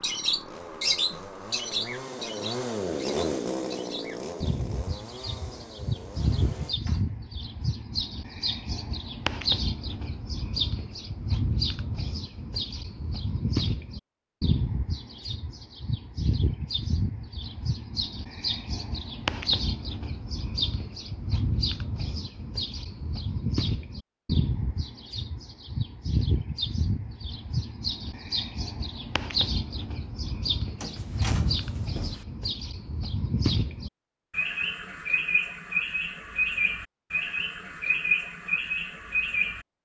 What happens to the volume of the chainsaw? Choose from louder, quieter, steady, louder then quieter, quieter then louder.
louder then quieter.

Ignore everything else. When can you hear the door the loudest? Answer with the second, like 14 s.
31 s.